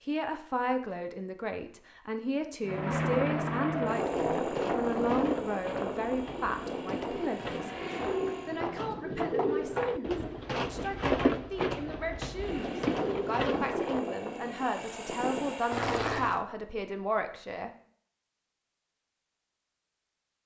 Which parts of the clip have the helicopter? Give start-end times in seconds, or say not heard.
2.6-8.7, 12.3-16.4.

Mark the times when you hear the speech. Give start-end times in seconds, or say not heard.
0.1-17.7.